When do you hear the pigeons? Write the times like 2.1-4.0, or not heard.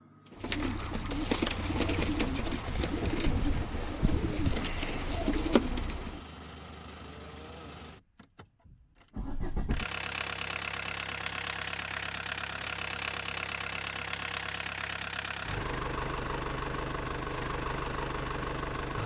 0.3-6.2.